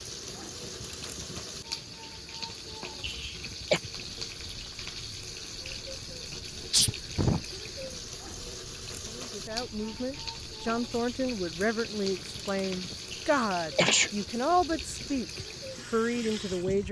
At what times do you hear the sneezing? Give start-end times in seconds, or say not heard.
3.0-3.8, 6.7-7.4, 13.1-14.1.